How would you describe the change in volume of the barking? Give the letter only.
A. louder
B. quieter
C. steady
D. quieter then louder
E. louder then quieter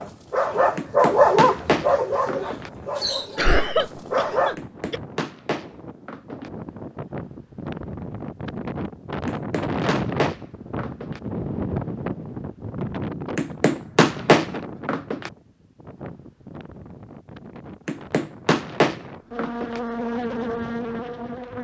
B.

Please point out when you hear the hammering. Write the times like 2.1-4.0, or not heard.
0.8-2.7, 4.5-6.5, 9.2-11.2, 13.3-15.3, 17.9-19.8.